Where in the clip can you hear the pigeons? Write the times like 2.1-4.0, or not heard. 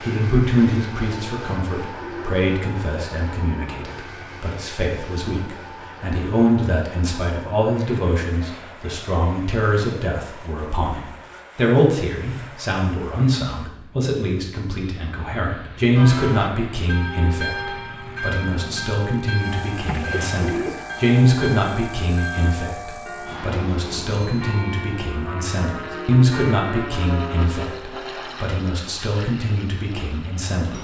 1.6-2.5, 19.9-20.9.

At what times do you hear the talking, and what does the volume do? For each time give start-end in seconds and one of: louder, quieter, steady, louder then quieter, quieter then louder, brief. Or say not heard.
0.0-30.7 steady.